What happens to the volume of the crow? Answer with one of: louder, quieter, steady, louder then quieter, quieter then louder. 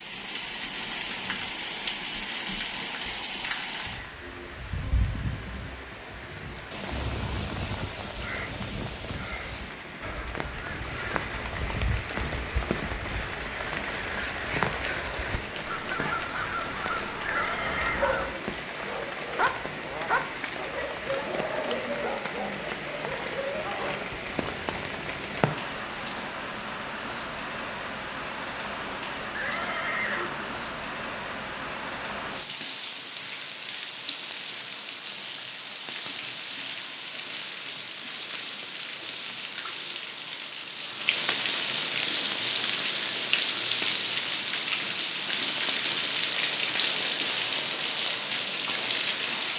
louder.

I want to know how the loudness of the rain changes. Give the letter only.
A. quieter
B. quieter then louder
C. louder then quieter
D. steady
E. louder
E.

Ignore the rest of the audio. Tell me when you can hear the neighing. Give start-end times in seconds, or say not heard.
17.2-18.1, 29.3-30.6.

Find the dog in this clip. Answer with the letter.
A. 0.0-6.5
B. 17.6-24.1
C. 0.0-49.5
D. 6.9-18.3
B.